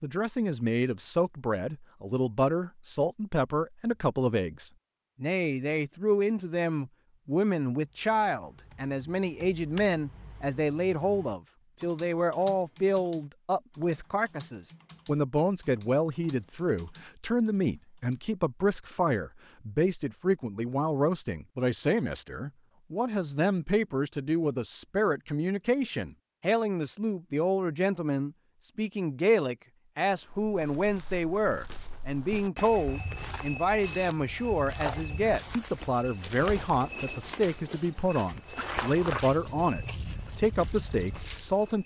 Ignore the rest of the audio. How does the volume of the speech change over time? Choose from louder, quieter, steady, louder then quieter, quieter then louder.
steady.